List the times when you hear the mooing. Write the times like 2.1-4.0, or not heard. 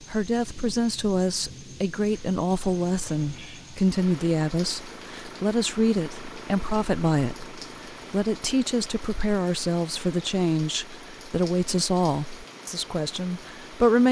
not heard.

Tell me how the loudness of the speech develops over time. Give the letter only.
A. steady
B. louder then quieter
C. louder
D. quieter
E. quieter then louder
A.